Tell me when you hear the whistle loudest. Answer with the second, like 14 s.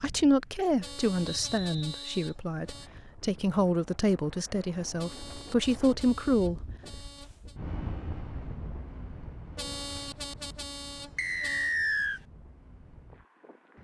12 s.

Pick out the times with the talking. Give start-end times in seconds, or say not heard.
0.0-6.6.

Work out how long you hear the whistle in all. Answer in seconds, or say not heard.
2 s.